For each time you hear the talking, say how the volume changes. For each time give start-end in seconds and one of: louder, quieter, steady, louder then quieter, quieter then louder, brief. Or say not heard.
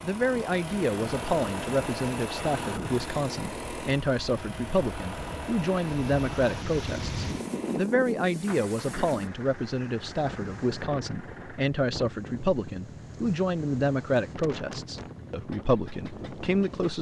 0.0-16.9 steady.